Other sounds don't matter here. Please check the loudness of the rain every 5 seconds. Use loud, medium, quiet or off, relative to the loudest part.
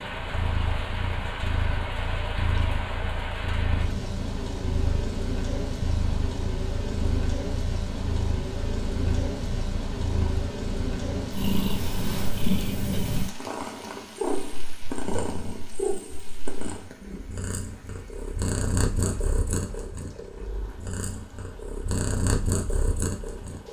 loud, loud, loud, quiet, quiet.